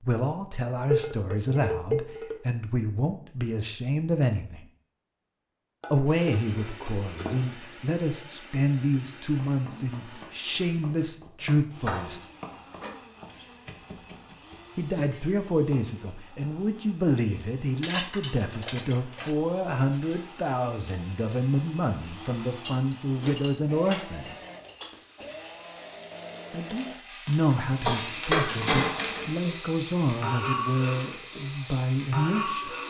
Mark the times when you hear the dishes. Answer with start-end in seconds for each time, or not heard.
0.9-2.4, 5.8-7.7, 11.4-13.0, 17.8-19.4, 22.6-25.2, 27.8-29.4.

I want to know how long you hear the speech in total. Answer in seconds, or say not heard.
27 s.